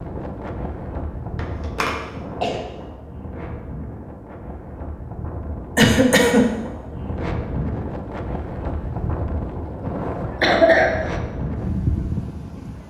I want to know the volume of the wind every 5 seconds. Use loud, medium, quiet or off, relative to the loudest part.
medium, loud, loud.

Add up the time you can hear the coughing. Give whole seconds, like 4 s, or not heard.
3 s.